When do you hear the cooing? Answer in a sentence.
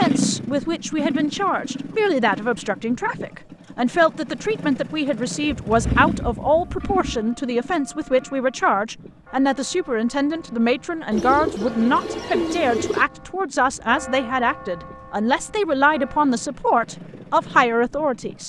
You can hear the cooing from 11.1 to 13.1 s.